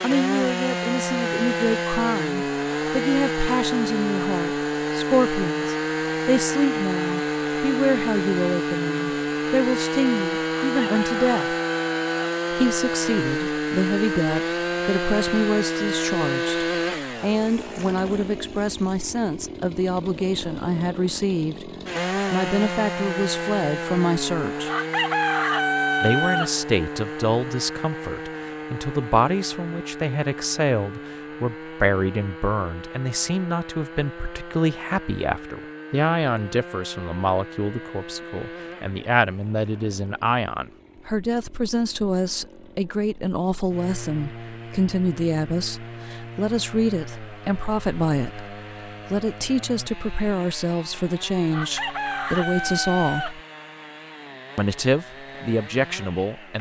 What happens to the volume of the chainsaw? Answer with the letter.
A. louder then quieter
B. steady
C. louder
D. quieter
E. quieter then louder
D.